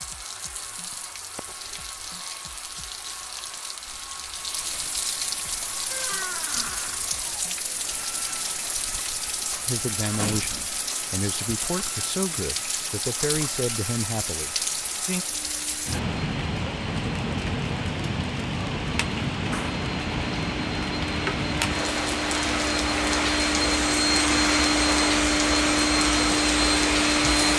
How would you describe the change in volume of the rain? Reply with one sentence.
The volume of the rain goes up.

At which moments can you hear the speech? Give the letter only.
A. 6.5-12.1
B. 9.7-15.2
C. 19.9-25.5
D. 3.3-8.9
B.